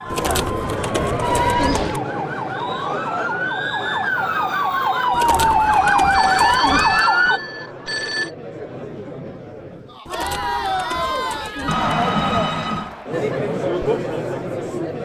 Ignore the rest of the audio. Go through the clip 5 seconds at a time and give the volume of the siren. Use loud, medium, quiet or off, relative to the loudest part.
medium, loud, off.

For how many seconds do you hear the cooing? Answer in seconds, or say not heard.
6 s.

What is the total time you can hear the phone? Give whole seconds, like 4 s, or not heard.
4 s.